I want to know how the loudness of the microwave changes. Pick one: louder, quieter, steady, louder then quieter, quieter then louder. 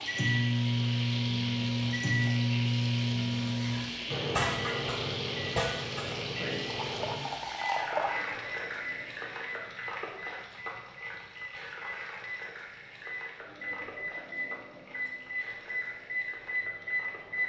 quieter then louder.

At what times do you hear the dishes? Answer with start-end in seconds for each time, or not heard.
not heard.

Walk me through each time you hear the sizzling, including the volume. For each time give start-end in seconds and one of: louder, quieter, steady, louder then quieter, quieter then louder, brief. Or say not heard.
0.0-17.4 quieter.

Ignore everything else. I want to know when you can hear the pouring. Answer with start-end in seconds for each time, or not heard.
6.7-8.2.